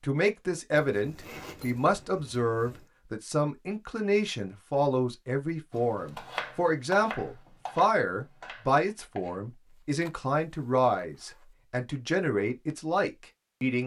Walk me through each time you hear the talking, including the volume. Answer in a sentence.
The talking can be heard from 0.0 to 13.8 s, at a steady volume.